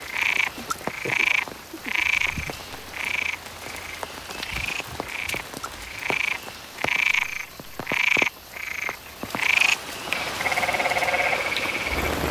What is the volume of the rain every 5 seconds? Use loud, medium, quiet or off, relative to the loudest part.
medium, medium, loud.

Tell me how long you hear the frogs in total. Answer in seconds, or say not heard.
12 s.